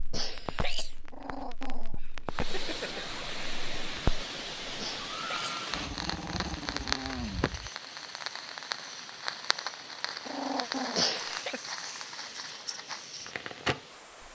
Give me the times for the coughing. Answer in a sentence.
You can hear the coughing from 0.1 to 1.0 s, from 4.8 to 5.5 s and from 10.9 to 11.6 s.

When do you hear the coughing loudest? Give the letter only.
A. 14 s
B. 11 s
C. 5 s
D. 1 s
B.